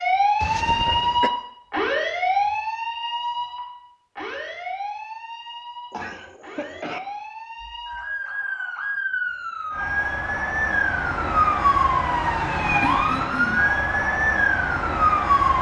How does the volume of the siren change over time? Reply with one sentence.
The loudness of the siren goes down, then up.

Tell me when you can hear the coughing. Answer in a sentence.
You can hear the coughing from 0.4 to 1.3 s, from 5.9 to 7.0 s and from 12.8 to 13.6 s.